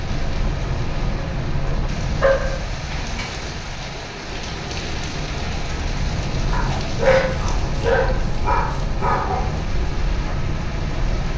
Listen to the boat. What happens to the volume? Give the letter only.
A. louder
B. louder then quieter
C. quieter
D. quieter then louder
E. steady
D.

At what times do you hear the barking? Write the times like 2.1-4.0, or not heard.
2.1-3.4, 6.5-9.4.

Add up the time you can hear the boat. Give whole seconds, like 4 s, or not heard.
11 s.